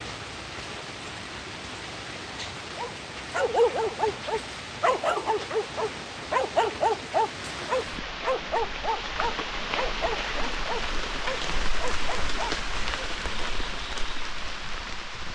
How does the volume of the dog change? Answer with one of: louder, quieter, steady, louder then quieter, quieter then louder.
quieter.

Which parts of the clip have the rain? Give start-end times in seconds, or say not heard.
0.0-15.2.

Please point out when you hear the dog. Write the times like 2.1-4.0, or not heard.
2.8-13.1.